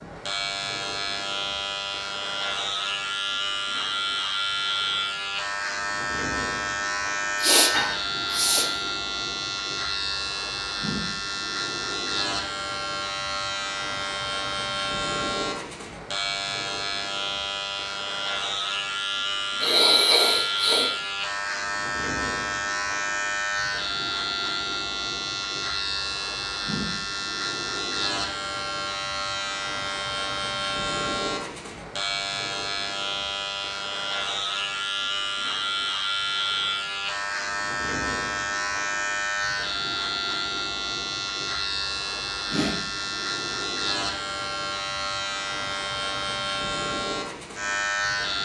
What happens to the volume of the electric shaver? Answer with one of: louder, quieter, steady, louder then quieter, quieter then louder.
steady.